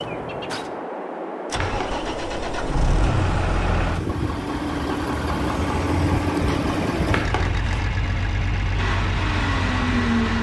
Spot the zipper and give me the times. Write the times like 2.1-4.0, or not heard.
1.6-2.0, 7.1-7.8.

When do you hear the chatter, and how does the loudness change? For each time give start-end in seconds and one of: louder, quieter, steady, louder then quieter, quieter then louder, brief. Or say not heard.
not heard.